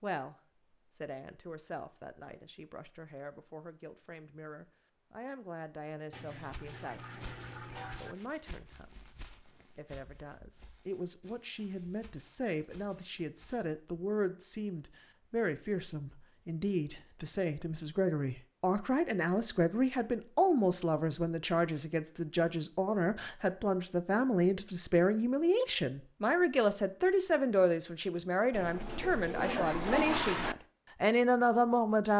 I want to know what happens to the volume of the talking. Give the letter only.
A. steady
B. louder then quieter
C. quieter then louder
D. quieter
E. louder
E.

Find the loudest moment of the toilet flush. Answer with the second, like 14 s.
30 s.